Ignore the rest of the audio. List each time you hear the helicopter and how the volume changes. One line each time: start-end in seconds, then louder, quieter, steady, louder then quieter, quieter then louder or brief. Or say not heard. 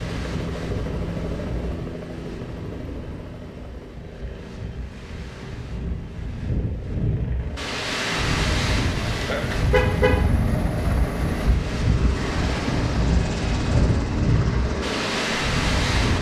0.0-16.1 quieter then louder.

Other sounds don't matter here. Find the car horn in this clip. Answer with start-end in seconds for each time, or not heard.
9.3-10.2.